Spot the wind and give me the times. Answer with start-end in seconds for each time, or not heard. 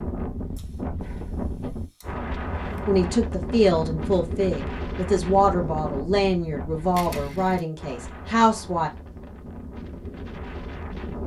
0.0-11.2.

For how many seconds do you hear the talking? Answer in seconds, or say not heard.
6 s.